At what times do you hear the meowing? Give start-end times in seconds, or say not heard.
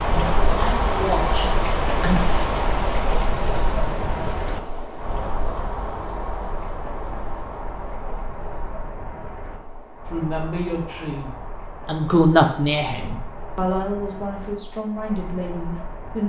not heard.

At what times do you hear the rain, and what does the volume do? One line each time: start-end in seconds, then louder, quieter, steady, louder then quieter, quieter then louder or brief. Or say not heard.
0.0-16.2 quieter.